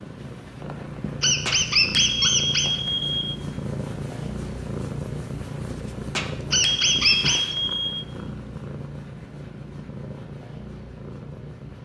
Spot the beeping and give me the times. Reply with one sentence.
The beeping can be heard from 1.4 to 3.2 s and from 6.2 to 8.0 s.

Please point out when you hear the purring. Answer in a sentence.
The purring can be heard from 0.0 to 11.8 s.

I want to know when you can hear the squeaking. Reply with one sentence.
The squeaking can be heard from 1.2 to 2.7 s and from 6.5 to 7.5 s.